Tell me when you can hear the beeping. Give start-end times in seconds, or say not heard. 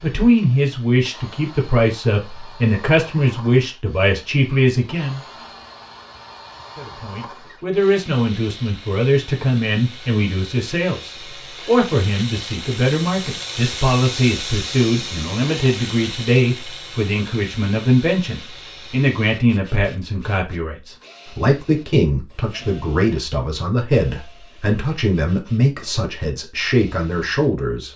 not heard.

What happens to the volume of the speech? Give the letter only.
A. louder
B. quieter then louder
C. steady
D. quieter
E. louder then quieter
C.